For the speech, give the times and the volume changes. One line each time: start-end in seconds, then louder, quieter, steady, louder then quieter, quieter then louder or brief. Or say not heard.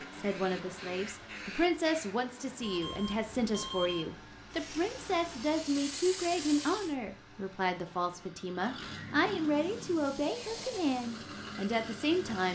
0.1-12.5 steady.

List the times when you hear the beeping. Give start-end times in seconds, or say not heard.
2.6-4.1.